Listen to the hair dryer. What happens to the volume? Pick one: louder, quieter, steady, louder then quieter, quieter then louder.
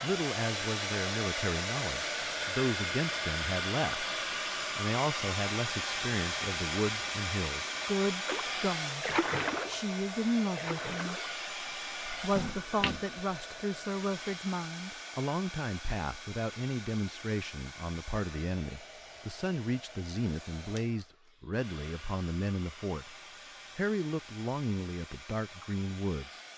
quieter.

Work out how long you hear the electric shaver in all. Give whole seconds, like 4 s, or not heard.
not heard.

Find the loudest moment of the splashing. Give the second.
9 s.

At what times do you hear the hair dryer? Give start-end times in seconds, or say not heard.
0.0-26.5.